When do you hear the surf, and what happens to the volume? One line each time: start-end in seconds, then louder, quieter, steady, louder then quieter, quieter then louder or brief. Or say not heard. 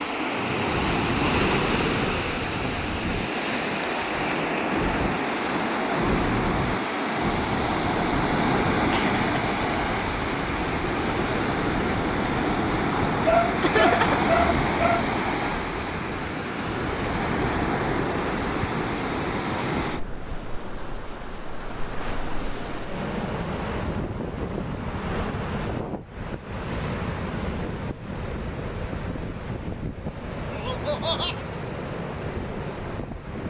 0.0-33.4 quieter.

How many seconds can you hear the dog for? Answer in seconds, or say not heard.
2 s.